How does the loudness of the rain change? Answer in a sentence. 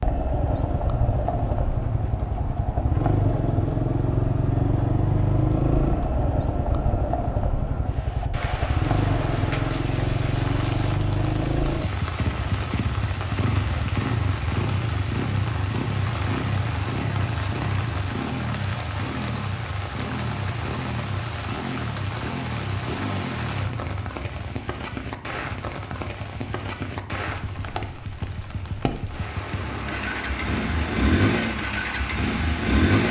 The loudness of the rain stays about the same.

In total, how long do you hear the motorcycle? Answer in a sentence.
You can hear the motorcycle for 33 seconds altogether.